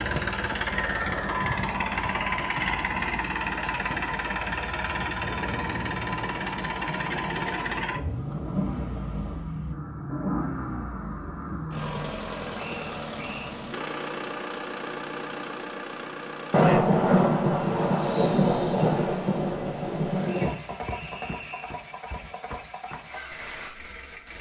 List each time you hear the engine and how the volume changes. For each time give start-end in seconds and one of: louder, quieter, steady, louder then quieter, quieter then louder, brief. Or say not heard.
0.0-24.3 quieter.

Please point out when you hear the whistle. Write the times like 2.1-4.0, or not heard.
0.7-2.5, 12.6-13.6, 20.2-21.8.